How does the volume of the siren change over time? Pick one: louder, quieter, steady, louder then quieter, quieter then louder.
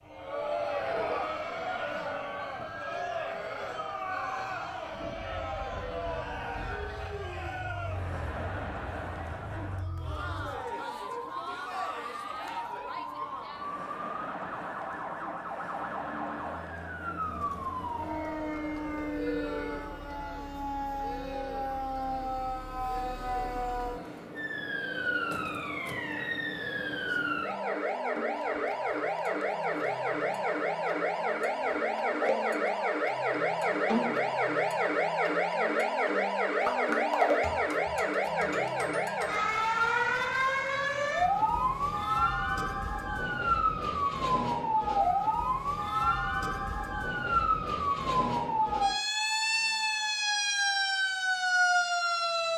louder.